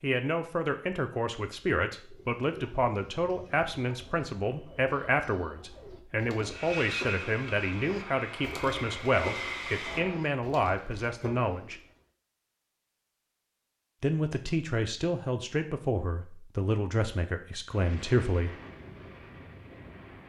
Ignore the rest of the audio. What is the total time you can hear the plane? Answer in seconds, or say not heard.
6 s.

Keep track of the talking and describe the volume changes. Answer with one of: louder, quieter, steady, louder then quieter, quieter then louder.
steady.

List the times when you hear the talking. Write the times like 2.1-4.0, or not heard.
0.0-11.8, 14.0-18.6.